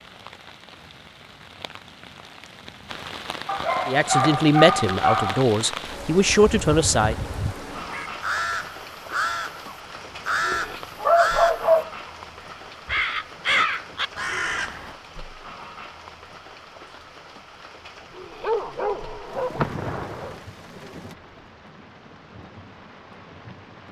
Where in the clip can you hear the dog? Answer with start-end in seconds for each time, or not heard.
3.5-5.5, 9.9-11.9, 18.4-20.4.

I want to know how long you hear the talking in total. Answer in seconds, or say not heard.
3 s.